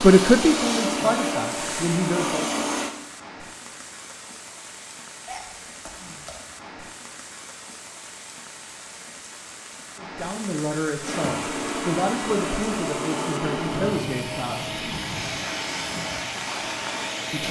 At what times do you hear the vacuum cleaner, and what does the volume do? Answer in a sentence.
You can hear the vacuum cleaner briefly from 0.0 to 3.0 s; and from 11.0 to 17.4 s, at a steady volume.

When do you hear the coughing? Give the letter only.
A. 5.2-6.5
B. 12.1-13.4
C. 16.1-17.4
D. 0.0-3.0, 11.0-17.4
A.